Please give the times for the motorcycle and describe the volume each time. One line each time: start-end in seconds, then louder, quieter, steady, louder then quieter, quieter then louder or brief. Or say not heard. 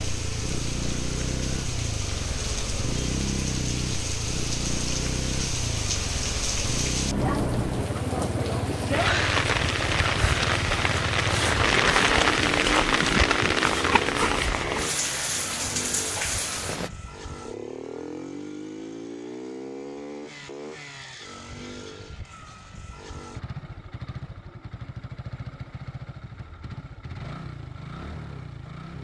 0.0-29.0 quieter.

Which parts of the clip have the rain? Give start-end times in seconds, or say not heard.
0.0-16.9.